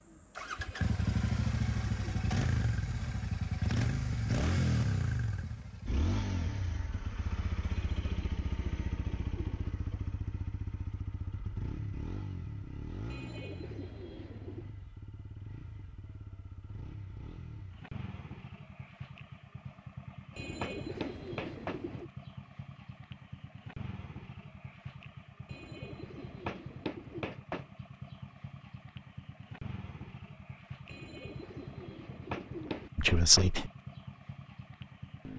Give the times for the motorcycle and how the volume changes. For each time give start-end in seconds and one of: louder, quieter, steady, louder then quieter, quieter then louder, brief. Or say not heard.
0.1-35.3 quieter.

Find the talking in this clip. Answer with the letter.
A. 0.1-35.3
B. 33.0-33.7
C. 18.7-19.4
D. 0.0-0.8
B.